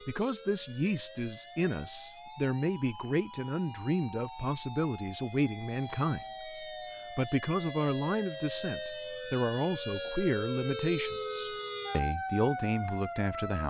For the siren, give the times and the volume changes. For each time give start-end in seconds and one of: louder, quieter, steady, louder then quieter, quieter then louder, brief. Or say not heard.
0.0-13.6 louder.